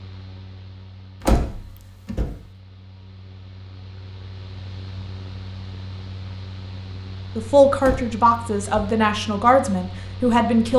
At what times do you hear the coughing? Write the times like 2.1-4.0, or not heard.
not heard.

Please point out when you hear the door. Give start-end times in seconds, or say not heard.
1.2-2.4, 7.8-8.9.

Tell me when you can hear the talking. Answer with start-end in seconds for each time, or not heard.
7.3-10.7.